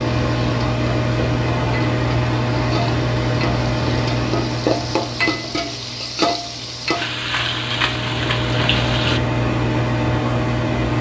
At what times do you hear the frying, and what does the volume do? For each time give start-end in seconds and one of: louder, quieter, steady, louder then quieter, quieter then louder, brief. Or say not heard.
0.0-9.2 louder.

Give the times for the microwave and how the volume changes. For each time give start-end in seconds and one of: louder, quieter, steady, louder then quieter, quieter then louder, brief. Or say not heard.
0.0-10.9 quieter then louder.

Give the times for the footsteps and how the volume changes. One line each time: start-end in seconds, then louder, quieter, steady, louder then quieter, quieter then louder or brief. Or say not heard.
not heard.